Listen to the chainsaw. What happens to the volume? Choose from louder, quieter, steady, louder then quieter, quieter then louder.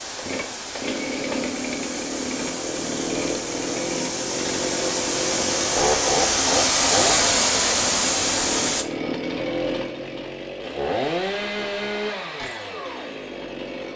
steady.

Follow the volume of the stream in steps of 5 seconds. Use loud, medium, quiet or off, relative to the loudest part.
medium, loud, off.